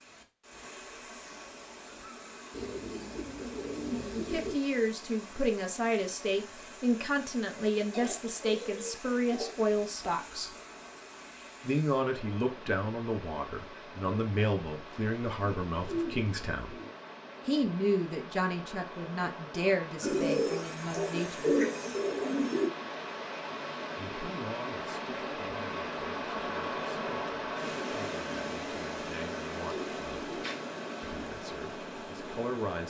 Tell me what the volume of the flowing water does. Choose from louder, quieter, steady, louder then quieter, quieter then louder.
louder.